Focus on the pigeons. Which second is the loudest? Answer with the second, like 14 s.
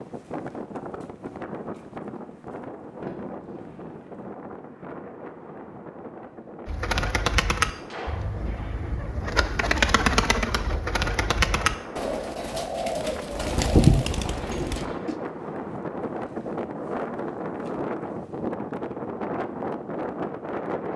14 s.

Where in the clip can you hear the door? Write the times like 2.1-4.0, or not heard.
3.0-4.1, 7.7-8.4, 14.2-15.1.